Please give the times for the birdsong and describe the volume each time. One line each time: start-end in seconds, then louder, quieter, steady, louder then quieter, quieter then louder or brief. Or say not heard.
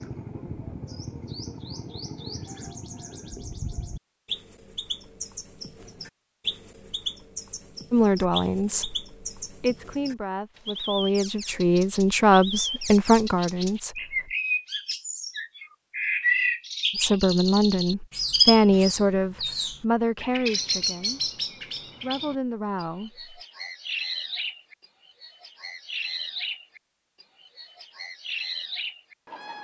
0.0-29.6 louder then quieter.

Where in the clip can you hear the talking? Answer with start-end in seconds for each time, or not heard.
7.9-13.9, 16.9-23.3.